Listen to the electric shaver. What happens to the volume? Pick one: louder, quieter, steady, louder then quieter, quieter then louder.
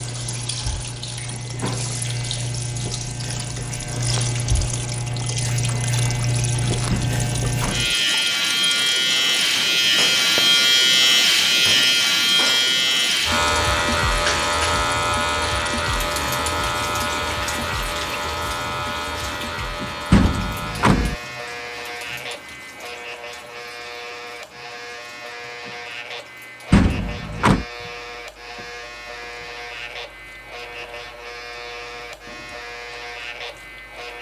louder then quieter.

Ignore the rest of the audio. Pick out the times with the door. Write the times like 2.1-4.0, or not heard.
6.8-8.0, 20.1-21.1, 26.7-27.6.